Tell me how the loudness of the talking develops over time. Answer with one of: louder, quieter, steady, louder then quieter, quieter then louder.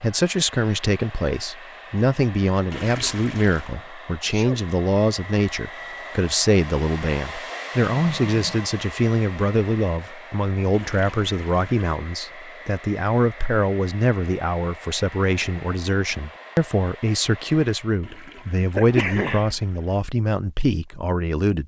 steady.